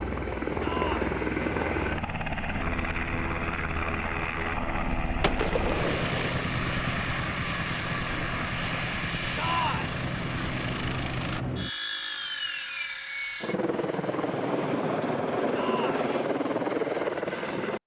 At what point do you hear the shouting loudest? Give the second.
10 s.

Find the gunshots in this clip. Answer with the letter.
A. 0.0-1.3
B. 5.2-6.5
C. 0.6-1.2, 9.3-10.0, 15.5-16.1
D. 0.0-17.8
B.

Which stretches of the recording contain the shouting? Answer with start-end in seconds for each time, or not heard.
0.6-1.2, 9.3-10.0, 15.5-16.1.